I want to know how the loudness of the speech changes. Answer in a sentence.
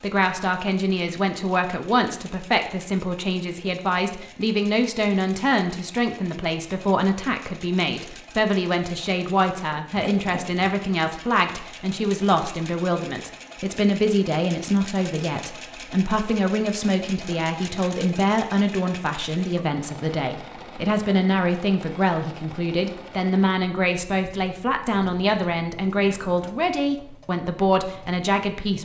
The loudness of the speech stays about the same.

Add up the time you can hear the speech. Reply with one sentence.
You can hear the speech for 29 seconds altogether.